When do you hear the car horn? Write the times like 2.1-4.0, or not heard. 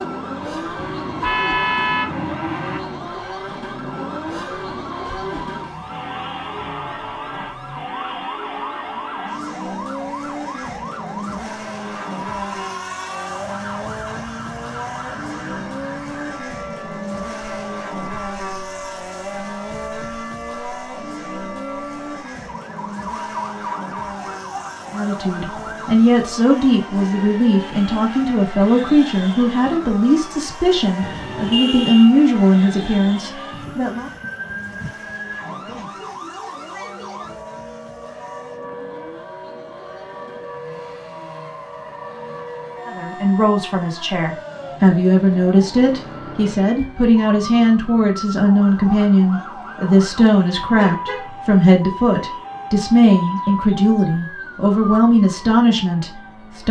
0.8-2.8, 31.0-32.1, 50.2-51.3.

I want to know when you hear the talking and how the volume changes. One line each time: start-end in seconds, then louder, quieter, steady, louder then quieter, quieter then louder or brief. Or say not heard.
24.9-34.1 steady
42.9-56.6 steady.